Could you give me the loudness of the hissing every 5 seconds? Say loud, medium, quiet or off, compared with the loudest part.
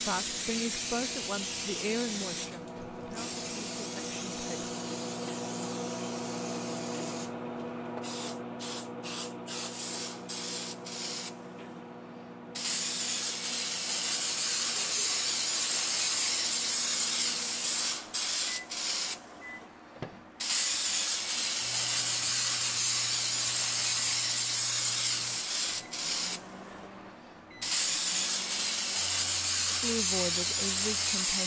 medium, quiet, medium, loud, loud, loud, loud.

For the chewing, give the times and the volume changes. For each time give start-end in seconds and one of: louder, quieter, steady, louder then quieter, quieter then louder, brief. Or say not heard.
not heard.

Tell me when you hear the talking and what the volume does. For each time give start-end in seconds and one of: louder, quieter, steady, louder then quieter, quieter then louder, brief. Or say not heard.
0.1-4.7 quieter
29.7-31.4 brief.